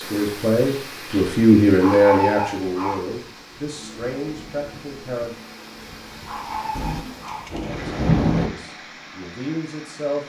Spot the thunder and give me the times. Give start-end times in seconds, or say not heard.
6.8-8.5.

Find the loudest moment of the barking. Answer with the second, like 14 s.
2 s.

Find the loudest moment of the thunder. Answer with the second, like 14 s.
8 s.